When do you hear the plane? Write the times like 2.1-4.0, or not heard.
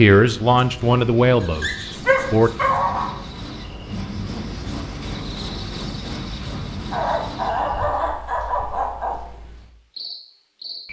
not heard.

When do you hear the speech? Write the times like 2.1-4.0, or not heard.
0.0-2.5.